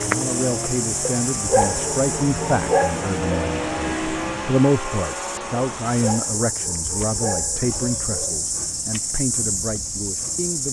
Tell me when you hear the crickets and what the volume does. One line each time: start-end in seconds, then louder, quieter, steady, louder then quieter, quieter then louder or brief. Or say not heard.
0.0-10.6 quieter then louder.